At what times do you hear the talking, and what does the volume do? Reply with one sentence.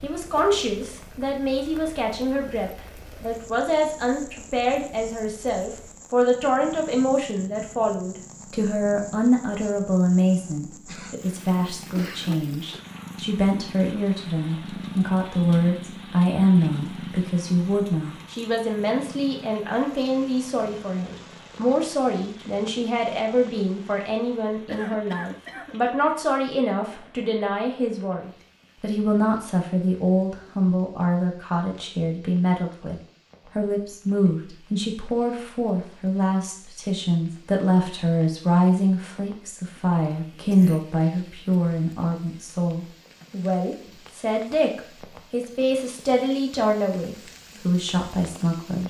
You can hear the talking from 0.0 to 48.8 s, at a steady volume.